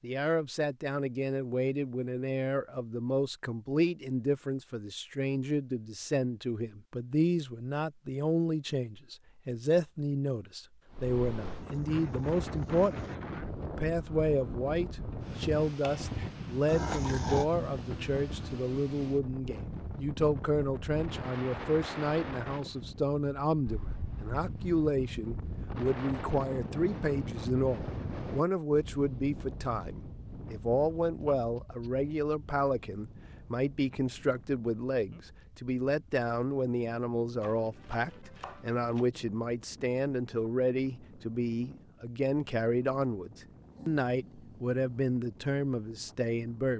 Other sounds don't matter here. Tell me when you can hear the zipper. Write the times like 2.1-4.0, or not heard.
not heard.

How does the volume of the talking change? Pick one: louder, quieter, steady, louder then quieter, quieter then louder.
steady.